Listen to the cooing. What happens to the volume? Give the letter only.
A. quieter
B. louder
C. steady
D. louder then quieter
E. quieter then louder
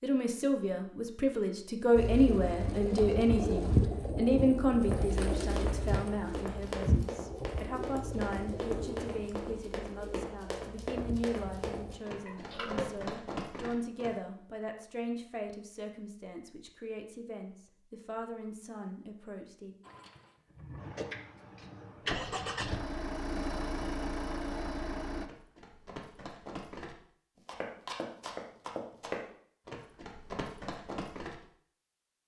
A.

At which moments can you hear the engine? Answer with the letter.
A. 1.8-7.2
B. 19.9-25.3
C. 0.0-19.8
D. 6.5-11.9
B.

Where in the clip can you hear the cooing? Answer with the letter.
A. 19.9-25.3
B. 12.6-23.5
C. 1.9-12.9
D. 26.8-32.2
C.